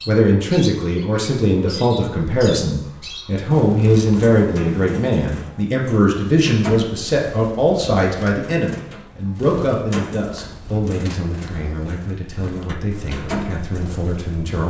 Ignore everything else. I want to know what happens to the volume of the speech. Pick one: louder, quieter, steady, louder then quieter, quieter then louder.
quieter.